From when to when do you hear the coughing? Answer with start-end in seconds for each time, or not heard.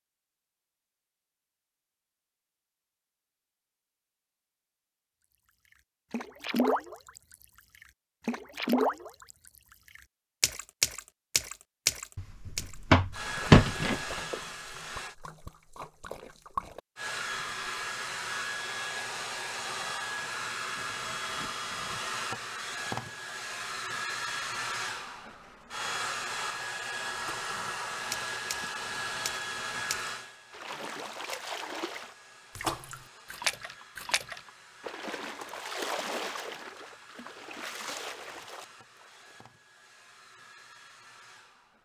not heard.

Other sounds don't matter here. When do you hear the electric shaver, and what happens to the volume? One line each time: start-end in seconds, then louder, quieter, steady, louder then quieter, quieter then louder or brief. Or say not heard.
not heard.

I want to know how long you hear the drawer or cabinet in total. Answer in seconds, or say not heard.
2 s.